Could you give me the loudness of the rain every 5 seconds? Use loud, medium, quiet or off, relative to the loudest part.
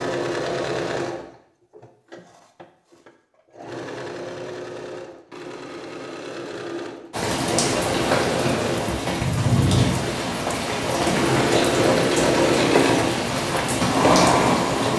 off, loud, loud.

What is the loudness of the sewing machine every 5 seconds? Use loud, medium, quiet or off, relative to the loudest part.
medium, medium, loud.